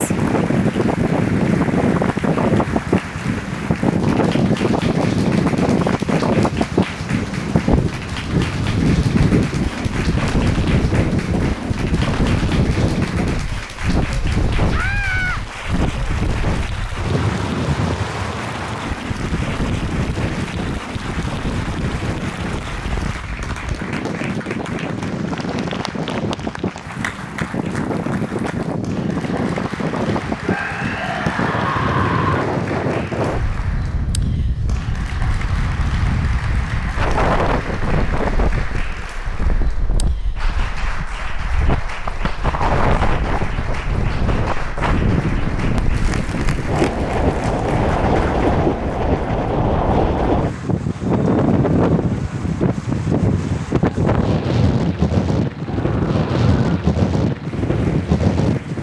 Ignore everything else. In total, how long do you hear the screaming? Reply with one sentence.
You can hear the screaming for 4 seconds altogether.